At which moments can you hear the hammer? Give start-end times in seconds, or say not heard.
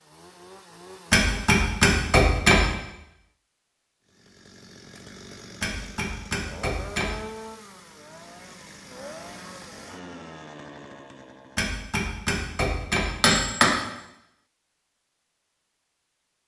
1.1-2.8, 5.6-7.2, 11.6-13.8.